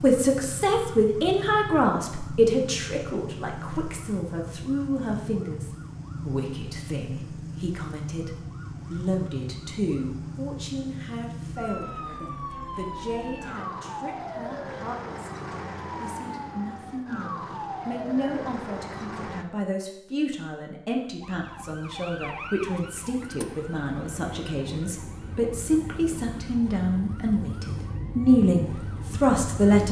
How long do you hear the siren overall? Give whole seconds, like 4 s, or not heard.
28 s.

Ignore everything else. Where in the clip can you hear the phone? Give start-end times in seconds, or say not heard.
not heard.